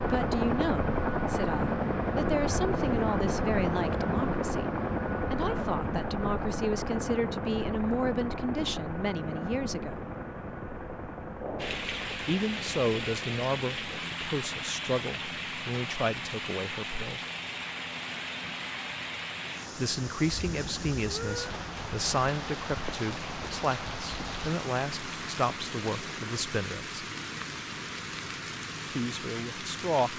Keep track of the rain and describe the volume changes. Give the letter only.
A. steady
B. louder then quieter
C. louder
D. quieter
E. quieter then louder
A.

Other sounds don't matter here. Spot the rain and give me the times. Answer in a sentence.
You can hear the rain from 11.6 to 30.1 s.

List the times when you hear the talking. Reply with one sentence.
The talking can be heard from 0.0 to 10.2 s, from 12.2 to 17.2 s, from 19.8 to 27.0 s and from 28.9 to 30.1 s.